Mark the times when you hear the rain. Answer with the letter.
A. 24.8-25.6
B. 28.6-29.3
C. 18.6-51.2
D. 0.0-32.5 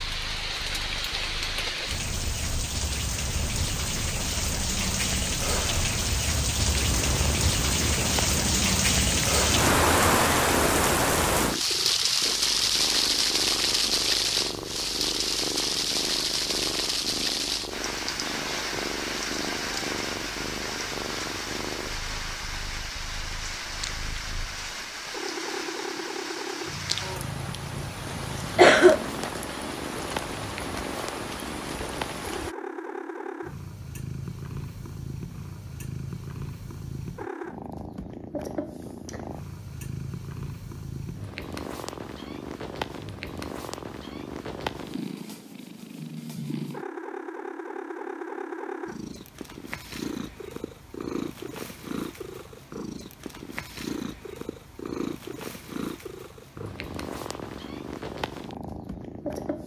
D.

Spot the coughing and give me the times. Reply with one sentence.
The coughing can be heard from 28.6 to 29.3 s.